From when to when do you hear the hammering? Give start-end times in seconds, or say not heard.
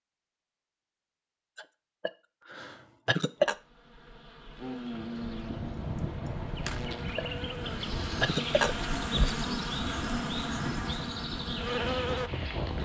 not heard.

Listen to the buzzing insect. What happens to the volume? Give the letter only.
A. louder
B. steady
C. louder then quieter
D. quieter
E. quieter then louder
A.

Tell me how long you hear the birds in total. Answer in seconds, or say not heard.
not heard.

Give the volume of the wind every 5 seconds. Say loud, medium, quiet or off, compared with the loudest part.
off, loud, loud.